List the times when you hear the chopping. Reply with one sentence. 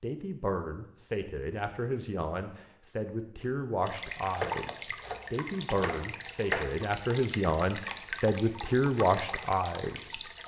The chopping can be heard from 4.3 to 6.8 s.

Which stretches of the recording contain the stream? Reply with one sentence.
You can hear the stream from 3.8 to 10.4 s.